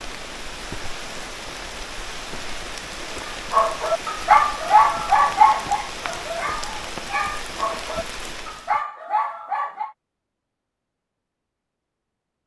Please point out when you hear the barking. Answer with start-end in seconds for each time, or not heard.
3.5-9.9.